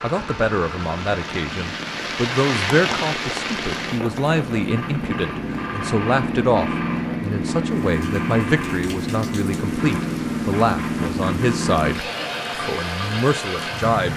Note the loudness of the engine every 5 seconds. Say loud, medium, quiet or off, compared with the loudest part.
medium, loud, loud.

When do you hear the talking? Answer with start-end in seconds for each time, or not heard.
0.0-14.1.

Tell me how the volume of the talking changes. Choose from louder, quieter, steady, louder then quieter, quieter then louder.
steady.